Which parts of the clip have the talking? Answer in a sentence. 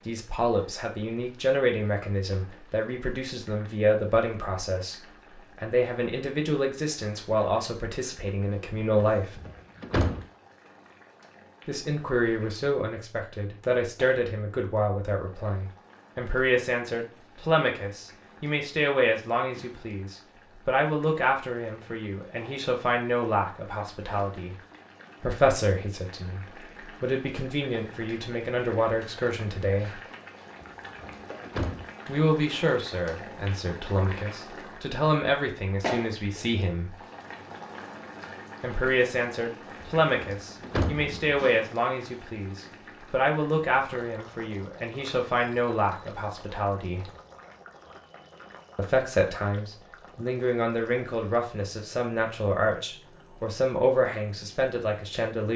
The talking can be heard from 0.1 to 9.3 s, from 11.7 to 24.6 s, from 25.2 to 30.0 s, from 32.0 to 37.0 s, from 38.6 to 47.1 s and from 48.8 to 55.5 s.